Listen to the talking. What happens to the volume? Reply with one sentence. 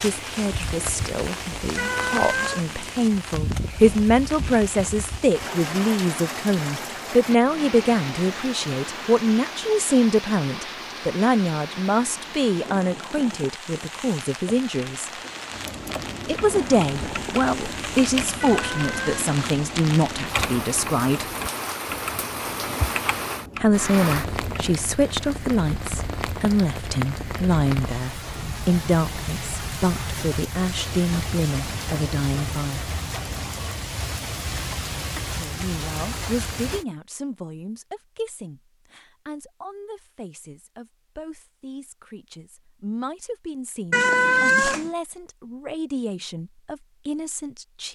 The loudness of the talking goes down.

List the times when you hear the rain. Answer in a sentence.
The rain can be heard from 0.0 to 36.9 s.